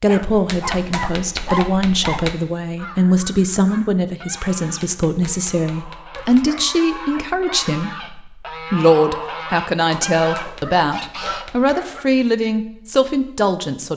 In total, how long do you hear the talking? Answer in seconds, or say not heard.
14 s.